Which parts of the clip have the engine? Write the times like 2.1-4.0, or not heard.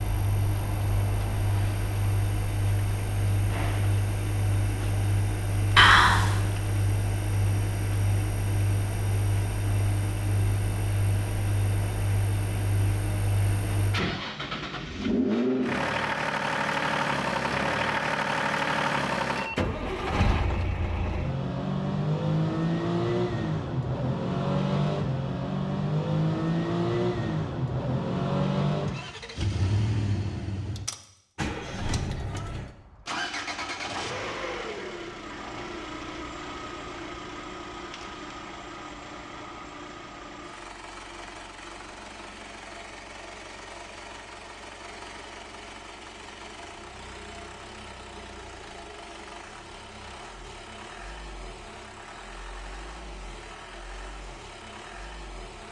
0.0-55.6.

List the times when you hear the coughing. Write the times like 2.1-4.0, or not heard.
5.8-6.3.